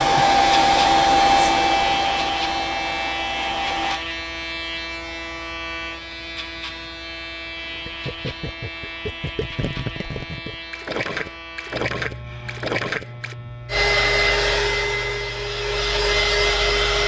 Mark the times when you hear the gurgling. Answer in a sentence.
You can hear the gurgling from 7.8 to 13.3 s.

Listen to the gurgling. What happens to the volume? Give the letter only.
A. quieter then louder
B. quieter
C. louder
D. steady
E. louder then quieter
C.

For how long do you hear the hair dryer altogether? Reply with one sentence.
You can hear the hair dryer for 7 seconds altogether.